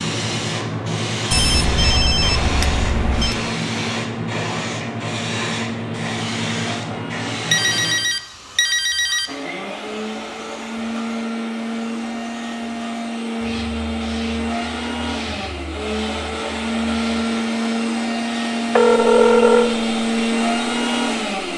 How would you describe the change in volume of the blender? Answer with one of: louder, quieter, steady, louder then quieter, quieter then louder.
louder.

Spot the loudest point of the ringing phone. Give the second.
19 s.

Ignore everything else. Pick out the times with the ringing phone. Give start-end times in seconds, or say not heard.
1.3-3.4, 7.5-9.3, 18.8-19.8.